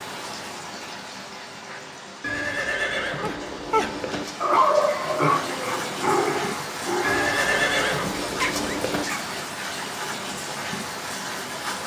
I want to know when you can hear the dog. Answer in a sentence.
The dog can be heard from 3.2 to 9.2 s.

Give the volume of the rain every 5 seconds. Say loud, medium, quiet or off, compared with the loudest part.
medium, loud, loud.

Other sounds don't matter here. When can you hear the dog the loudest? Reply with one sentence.
The volume of the dog peaks at 5 seconds.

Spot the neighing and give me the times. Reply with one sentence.
The neighing can be heard from 2.2 to 4.2 s and from 7.0 to 9.1 s.